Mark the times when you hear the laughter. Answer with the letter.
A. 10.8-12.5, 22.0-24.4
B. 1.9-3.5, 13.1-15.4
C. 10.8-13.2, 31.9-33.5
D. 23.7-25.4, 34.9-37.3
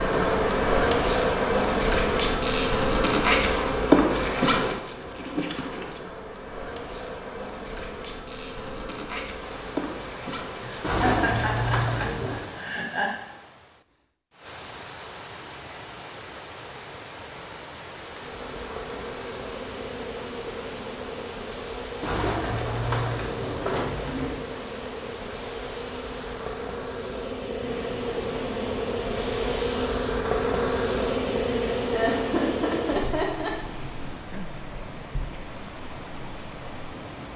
C.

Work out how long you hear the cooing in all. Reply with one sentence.
You can hear the cooing for 4 seconds altogether.